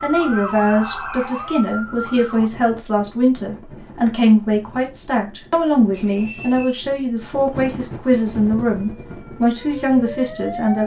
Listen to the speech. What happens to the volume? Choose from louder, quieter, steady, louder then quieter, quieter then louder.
steady.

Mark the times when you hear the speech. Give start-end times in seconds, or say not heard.
0.0-10.8.